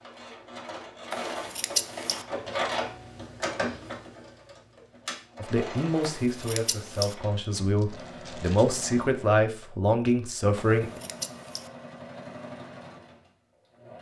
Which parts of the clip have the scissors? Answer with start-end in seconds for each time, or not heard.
1.1-2.2, 6.0-7.2, 10.6-11.7.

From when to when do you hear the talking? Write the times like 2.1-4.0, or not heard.
5.4-11.0.